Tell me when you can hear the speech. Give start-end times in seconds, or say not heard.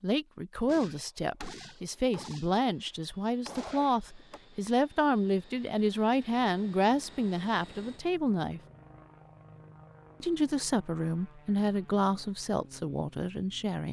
0.0-8.6, 10.2-13.8.